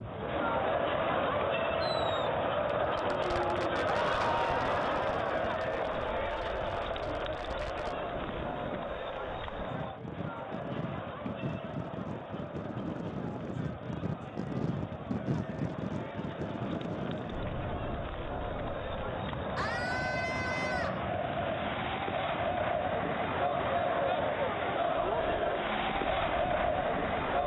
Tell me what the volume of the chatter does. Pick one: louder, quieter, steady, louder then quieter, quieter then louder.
quieter then louder.